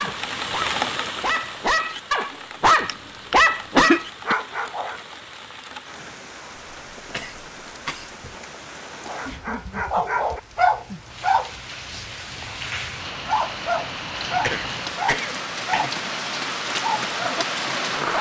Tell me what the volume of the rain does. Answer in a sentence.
The loudness of the rain goes down, then up.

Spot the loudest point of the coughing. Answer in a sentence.
The loudest moment of the coughing is at 4 seconds.